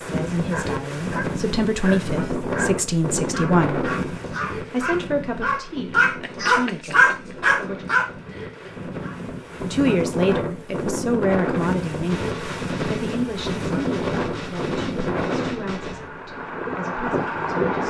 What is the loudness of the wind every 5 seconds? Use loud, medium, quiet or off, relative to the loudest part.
loud, medium, loud, loud.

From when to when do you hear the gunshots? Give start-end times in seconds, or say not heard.
12.1-16.1.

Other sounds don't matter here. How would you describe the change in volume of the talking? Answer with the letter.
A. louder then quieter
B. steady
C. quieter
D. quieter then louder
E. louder
C.